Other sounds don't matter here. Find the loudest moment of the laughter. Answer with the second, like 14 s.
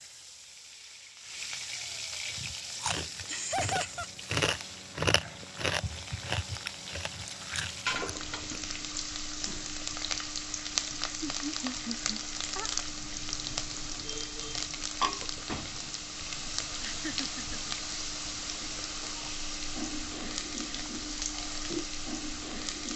4 s.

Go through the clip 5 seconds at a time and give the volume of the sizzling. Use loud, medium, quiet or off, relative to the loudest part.
medium, loud, loud, loud, loud.